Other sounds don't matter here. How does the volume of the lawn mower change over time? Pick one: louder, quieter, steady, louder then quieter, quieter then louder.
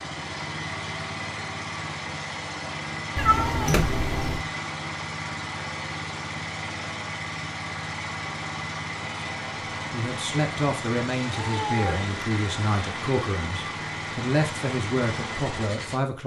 steady.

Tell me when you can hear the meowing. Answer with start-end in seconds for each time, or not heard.
3.1-4.5, 11.2-12.1.